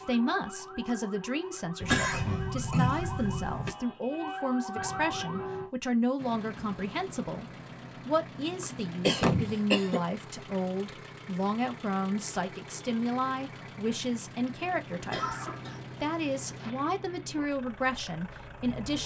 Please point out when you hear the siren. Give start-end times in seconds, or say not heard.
0.0-5.7.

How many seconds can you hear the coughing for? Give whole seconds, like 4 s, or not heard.
4 s.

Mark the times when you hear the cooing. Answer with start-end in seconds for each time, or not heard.
not heard.